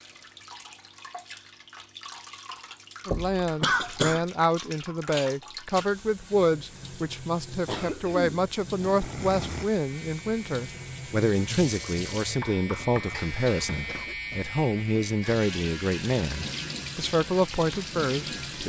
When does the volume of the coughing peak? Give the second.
4 s.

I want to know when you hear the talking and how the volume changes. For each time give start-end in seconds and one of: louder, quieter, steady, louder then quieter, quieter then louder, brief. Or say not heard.
3.0-18.6 steady.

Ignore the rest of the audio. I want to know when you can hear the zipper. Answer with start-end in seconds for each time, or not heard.
not heard.